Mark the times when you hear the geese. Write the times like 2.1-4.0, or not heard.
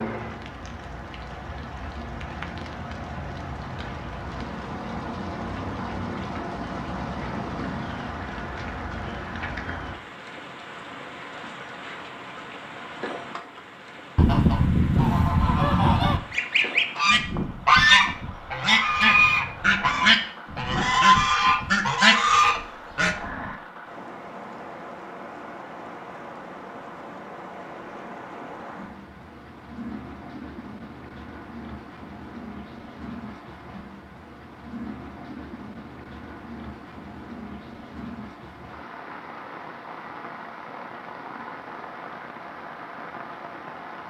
14.2-23.1.